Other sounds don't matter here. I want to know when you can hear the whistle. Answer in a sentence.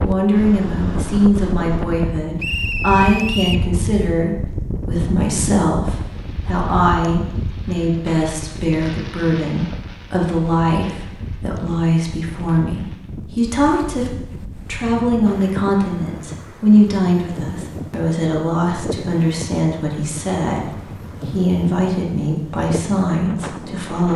The whistle can be heard from 2.4 to 3.6 s.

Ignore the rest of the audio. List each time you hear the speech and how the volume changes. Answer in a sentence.
You can hear the speech from 0.0 to 24.1 s, at a steady volume.